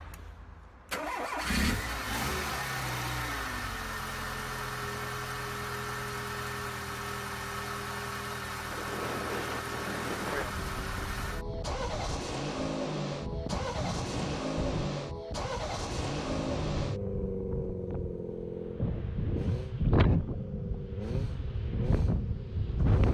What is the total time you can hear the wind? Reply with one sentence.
You can hear the wind for 14 seconds altogether.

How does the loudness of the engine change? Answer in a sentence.
The loudness of the engine goes down.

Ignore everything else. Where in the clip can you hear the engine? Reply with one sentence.
You can hear the engine from 0.0 to 23.0 s.